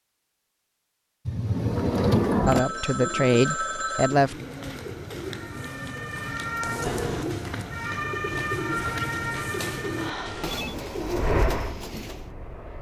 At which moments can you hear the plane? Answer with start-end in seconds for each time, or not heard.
10.2-12.7.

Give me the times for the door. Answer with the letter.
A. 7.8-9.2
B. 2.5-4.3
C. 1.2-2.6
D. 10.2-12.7
C.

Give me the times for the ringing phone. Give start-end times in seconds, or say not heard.
2.5-4.2, 9.9-10.8.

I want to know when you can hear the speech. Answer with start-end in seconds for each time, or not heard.
2.5-4.3.